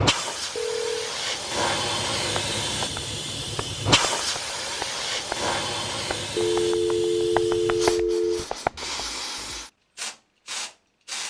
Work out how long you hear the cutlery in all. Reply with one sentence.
You can't hear the cutlery here.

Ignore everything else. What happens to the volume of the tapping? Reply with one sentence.
The loudness of the tapping goes up.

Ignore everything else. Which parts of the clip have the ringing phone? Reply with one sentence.
You can hear the ringing phone from 0.6 to 1.1 s and from 6.3 to 8.4 s.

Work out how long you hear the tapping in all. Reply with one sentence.
The tapping can be heard for 7 seconds in total.